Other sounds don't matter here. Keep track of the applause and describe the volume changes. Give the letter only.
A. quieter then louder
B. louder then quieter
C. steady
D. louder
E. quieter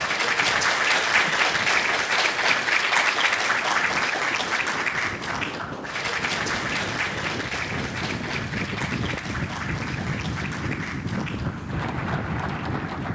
E.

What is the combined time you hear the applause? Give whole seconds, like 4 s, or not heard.
13 s.